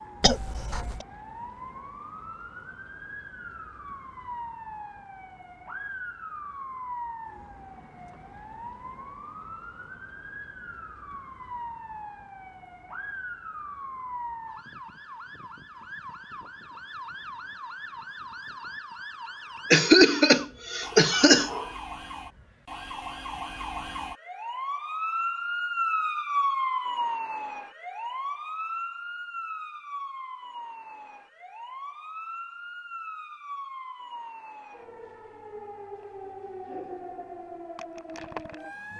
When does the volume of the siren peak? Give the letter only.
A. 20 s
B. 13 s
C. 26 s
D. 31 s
C.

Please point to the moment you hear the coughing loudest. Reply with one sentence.
The volume of the coughing peaks at 20 seconds.